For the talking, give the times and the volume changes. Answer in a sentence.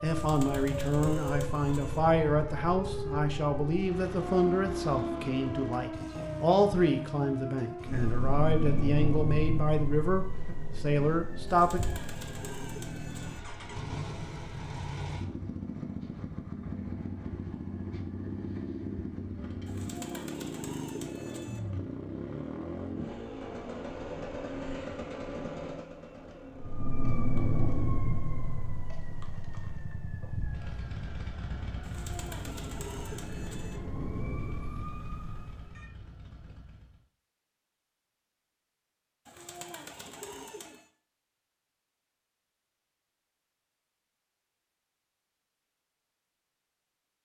You can hear the talking from 0.0 to 11.8 s, at a steady volume.